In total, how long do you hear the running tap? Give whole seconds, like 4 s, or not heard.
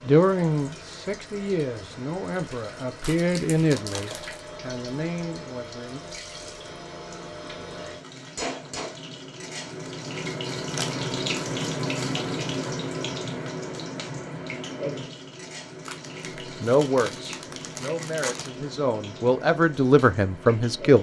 21 s.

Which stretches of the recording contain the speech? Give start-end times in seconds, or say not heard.
0.1-6.0, 16.6-20.9.